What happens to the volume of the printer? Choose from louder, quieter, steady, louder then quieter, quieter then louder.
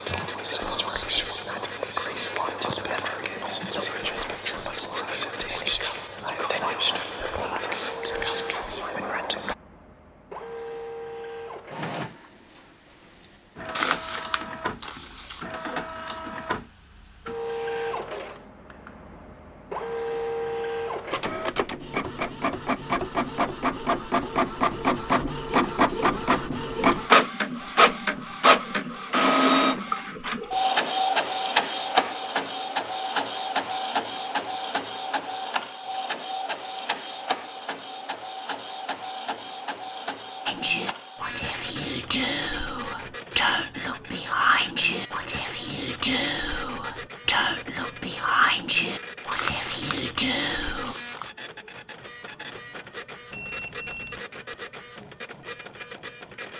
louder then quieter.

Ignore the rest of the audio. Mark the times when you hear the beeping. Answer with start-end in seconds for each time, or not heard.
53.3-54.2.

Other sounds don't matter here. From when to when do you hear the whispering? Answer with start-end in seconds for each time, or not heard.
0.0-9.6, 40.5-51.0.